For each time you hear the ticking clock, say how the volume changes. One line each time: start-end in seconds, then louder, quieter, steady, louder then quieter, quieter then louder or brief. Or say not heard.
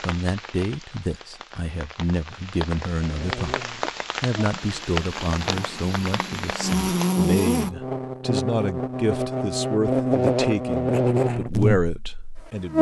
not heard.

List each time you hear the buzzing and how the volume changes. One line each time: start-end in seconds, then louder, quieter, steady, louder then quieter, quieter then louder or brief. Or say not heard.
3.0-12.7 louder.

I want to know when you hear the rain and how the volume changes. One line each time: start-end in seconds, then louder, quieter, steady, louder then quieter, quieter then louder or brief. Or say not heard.
0.0-7.1 louder.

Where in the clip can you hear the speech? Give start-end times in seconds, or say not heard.
0.1-3.6, 4.2-12.7.